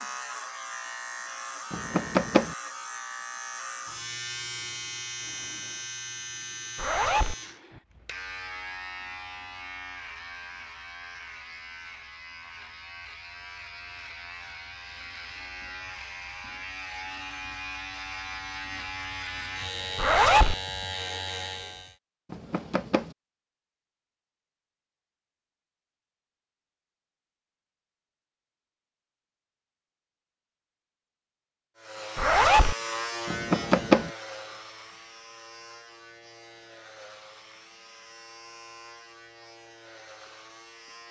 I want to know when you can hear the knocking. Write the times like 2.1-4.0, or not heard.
1.7-2.5, 22.3-23.1, 33.2-34.1.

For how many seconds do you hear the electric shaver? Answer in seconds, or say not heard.
31 s.